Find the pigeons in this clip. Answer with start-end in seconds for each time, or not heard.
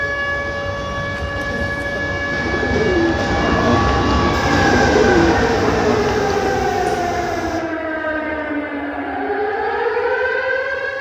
1.4-7.0.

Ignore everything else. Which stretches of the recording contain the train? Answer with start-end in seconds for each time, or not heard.
0.0-7.6.